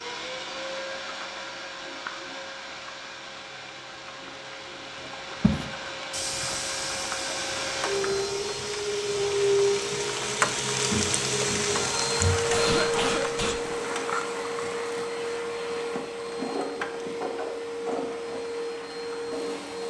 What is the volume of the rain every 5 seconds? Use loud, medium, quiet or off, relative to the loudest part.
quiet, medium, loud, quiet.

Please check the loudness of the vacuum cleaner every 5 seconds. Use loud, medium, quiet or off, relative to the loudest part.
medium, loud, loud, loud.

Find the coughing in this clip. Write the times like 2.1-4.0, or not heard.
12.3-13.7.